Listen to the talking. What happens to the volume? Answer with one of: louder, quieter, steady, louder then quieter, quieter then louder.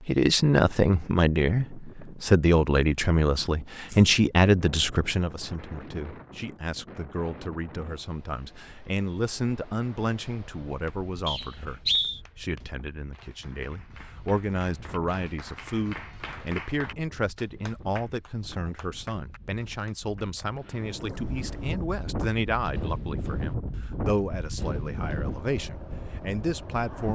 quieter.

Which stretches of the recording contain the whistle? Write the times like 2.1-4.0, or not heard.
11.2-12.2.